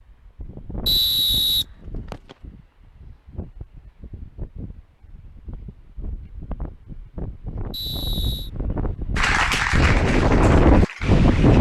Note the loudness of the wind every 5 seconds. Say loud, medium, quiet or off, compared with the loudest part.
quiet, quiet, loud.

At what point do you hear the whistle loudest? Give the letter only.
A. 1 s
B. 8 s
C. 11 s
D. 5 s
A.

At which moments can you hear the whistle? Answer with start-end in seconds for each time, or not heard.
0.8-2.4, 7.7-8.5.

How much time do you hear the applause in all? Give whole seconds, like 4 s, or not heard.
2 s.